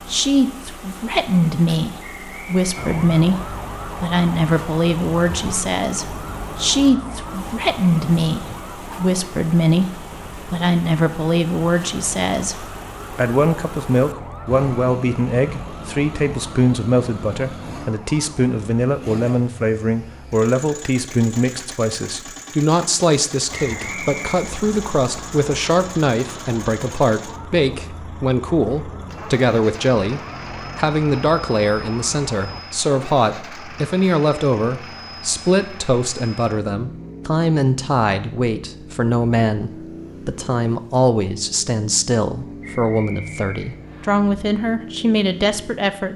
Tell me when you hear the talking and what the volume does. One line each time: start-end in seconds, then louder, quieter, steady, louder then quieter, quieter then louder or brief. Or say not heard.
0.1-46.1 steady.